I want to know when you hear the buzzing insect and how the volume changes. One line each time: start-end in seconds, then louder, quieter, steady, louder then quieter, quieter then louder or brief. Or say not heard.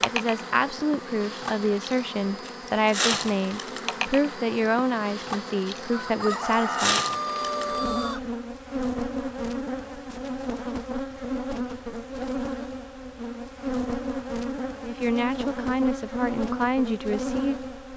0.0-17.9 steady.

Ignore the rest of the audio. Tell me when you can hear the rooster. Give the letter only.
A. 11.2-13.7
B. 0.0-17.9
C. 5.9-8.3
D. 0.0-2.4
C.